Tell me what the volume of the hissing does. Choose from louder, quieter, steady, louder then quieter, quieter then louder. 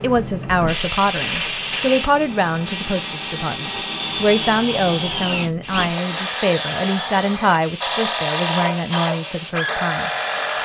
quieter.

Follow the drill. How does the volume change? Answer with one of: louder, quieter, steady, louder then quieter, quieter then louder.
louder.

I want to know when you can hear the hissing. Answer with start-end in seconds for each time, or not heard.
0.0-10.6.